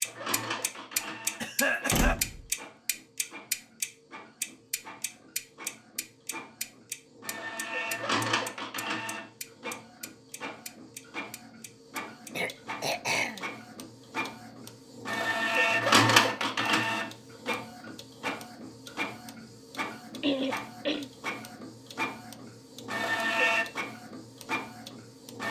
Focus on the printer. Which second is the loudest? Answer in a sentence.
The volume of the printer peaks at 16 seconds.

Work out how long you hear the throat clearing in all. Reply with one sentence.
You can hear the throat clearing for 3 seconds altogether.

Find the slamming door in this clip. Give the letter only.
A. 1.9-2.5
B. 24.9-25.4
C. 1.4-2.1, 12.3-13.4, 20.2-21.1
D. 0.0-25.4
A.